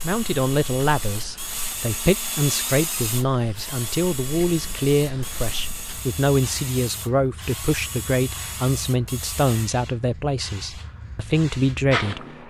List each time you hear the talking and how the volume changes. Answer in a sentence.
The talking can be heard from 0.0 to 12.4 s, at a steady volume.